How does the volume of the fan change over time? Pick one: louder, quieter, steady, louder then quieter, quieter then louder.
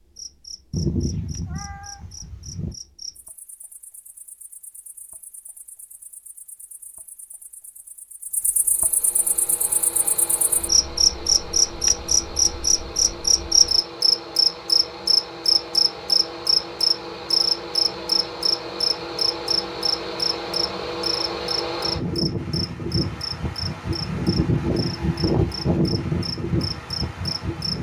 louder.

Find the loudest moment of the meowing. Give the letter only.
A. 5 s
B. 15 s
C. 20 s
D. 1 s
D.